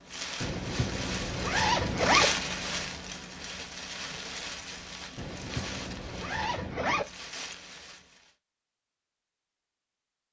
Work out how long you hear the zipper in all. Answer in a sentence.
The zipper can be heard for 4 seconds in total.